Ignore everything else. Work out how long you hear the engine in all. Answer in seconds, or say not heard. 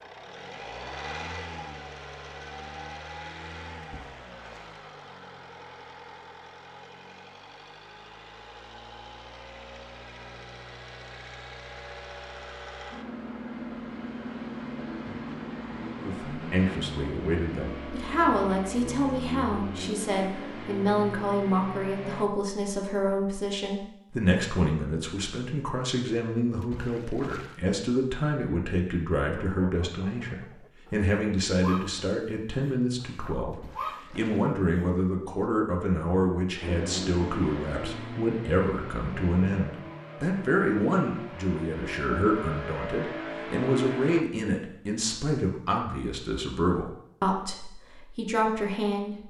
30 s.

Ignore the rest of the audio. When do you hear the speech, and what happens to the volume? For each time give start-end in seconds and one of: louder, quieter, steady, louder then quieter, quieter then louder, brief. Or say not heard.
15.9-49.2 steady.